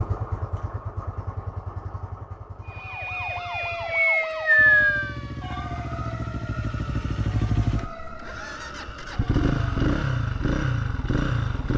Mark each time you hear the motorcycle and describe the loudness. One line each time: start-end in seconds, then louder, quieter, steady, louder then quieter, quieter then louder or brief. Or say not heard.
0.0-11.7 quieter then louder.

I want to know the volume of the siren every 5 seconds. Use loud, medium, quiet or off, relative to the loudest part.
loud, quiet, off.